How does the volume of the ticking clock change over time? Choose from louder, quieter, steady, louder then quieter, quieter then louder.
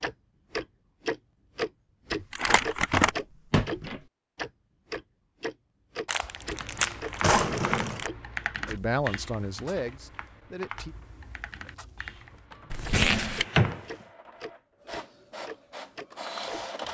quieter then louder.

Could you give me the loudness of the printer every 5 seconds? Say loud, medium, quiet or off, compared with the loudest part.
off, off, medium, loud.